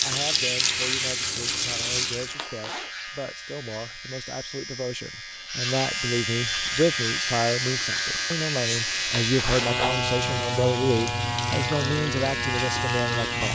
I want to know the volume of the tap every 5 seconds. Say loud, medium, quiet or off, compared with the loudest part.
loud, medium, medium.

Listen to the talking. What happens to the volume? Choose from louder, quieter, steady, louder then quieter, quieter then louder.
louder.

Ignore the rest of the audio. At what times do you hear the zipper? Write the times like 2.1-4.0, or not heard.
2.2-2.9, 9.0-9.9.